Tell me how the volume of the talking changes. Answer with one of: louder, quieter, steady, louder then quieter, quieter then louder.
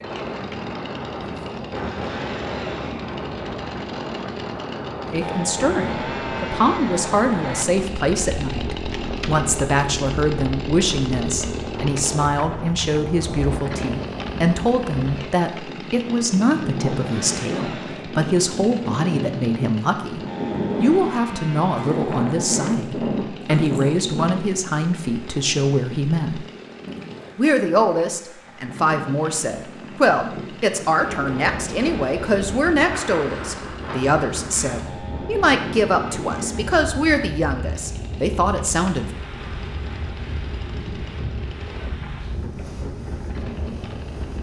steady.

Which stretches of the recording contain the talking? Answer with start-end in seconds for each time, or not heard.
5.1-20.2, 20.8-26.4, 27.4-39.1.